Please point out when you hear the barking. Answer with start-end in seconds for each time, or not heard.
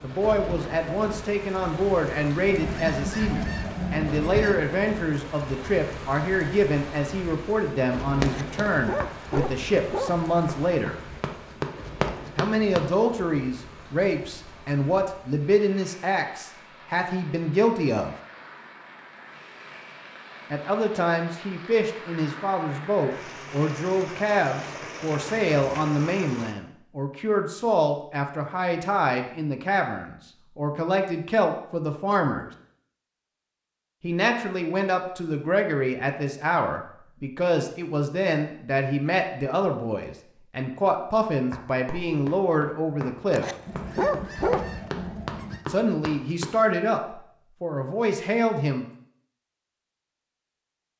8.2-10.2, 43.3-44.6.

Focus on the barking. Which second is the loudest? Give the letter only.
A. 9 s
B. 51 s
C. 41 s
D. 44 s
D.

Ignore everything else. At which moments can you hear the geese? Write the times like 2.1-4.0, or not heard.
2.5-4.7, 43.6-45.6.